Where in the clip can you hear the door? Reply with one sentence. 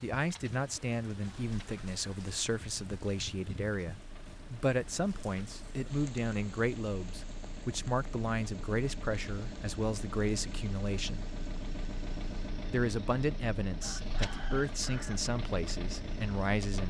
The door can't be heard in this clip.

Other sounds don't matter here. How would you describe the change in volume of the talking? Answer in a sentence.
The loudness of the talking stays about the same.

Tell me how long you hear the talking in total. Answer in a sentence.
You can hear the talking for 15 seconds altogether.